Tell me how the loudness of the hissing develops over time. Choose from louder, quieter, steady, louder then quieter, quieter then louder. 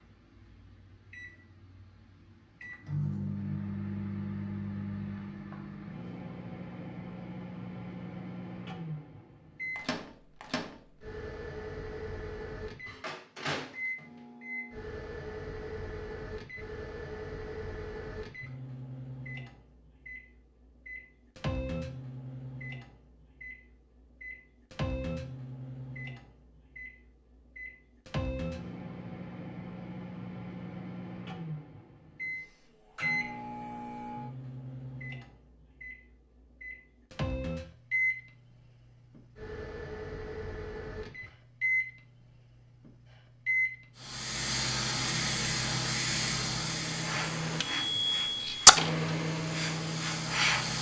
quieter then louder.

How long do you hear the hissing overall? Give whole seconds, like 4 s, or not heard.
7 s.